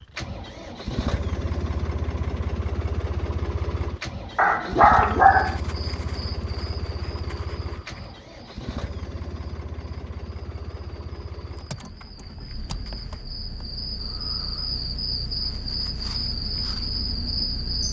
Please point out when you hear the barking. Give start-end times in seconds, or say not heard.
4.3-5.6.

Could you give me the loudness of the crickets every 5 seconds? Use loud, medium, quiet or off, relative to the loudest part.
off, quiet, medium, loud.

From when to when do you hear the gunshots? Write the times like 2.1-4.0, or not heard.
not heard.